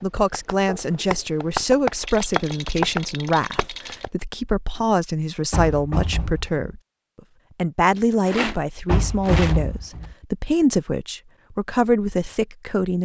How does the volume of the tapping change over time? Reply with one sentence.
The volume of the tapping goes up, then down.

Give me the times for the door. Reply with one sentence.
You can hear the door from 0.7 to 1.1 s, from 5.5 to 6.7 s and from 8.8 to 10.2 s.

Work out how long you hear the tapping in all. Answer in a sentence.
The tapping can be heard for 4 seconds in total.